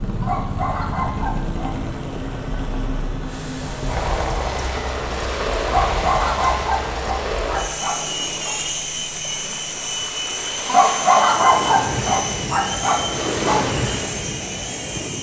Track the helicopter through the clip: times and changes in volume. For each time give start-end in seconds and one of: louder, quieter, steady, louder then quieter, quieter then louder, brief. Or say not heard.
0.0-15.1 steady.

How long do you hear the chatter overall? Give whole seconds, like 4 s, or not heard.
not heard.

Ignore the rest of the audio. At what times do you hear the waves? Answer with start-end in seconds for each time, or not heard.
3.2-15.1.